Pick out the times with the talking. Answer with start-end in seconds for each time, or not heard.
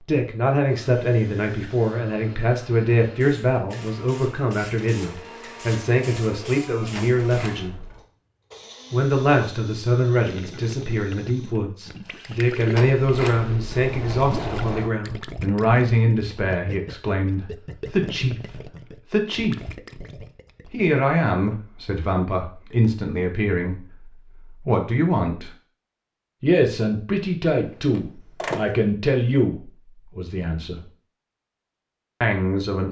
0.0-7.8, 8.9-19.6, 20.7-25.6, 26.4-30.8, 32.2-32.8.